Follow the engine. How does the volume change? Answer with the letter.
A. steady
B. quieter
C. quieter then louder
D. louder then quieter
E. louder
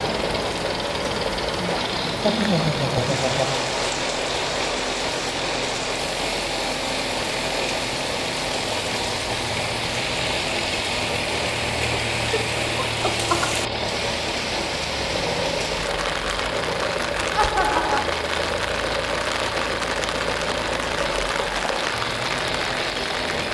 A.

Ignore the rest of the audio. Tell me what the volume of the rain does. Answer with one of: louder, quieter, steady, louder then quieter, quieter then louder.
steady.